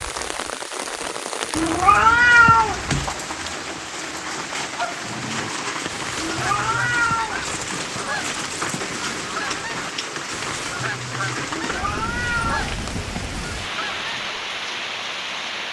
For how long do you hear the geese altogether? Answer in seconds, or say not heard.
10 s.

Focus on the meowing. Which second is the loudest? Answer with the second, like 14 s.
2 s.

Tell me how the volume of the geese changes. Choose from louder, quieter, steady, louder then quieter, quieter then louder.
steady.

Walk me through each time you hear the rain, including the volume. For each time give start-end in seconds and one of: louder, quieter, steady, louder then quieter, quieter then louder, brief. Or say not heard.
0.0-15.6 steady.